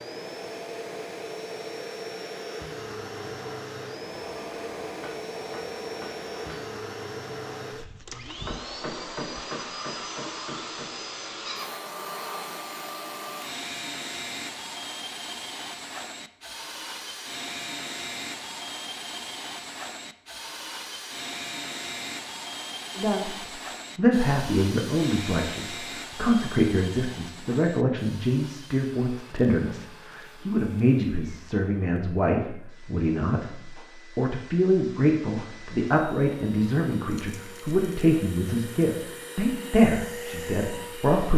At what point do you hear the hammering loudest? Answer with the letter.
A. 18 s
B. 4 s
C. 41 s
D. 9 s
D.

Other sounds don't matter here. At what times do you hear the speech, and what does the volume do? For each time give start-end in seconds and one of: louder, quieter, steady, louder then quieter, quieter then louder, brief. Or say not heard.
22.9-41.3 steady.